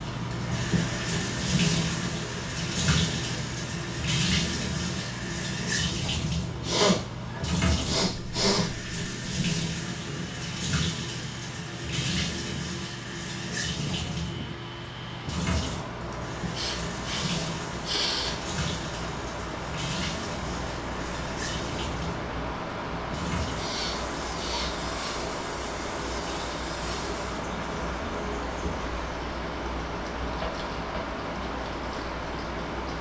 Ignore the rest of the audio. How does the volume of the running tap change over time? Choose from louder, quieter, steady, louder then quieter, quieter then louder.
quieter.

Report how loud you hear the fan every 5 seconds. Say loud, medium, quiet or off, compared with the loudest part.
medium, medium, medium, loud, loud, loud, loud.